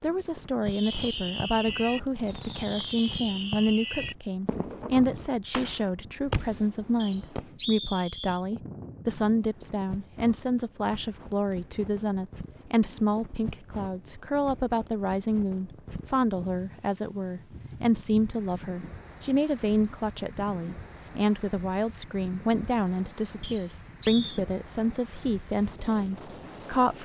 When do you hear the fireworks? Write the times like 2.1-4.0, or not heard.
0.7-7.5.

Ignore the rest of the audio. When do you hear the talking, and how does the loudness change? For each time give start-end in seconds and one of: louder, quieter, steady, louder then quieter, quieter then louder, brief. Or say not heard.
0.0-27.0 steady.